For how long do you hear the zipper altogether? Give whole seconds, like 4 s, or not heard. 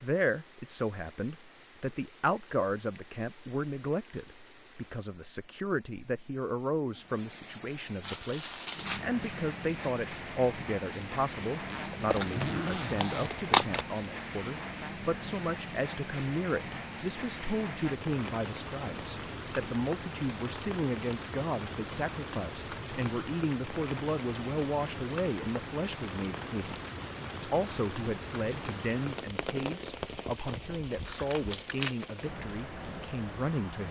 2 s.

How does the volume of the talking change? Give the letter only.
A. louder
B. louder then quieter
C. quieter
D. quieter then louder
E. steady
E.